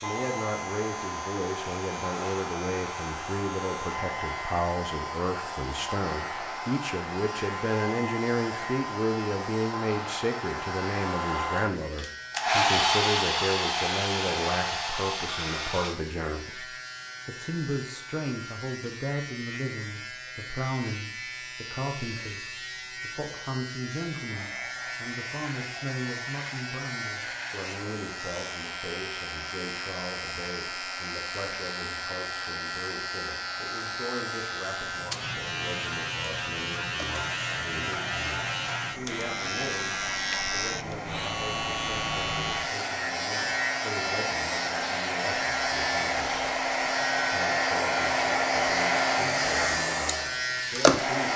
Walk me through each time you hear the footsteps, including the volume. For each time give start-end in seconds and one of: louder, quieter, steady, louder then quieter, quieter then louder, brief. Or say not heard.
not heard.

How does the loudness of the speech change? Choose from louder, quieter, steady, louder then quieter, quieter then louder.
quieter.